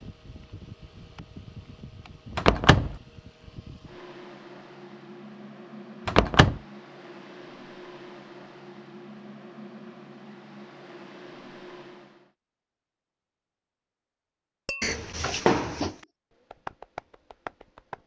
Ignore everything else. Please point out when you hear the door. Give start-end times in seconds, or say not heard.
2.4-3.0, 6.0-6.6, 14.8-15.8.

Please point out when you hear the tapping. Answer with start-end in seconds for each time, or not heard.
14.7-18.0.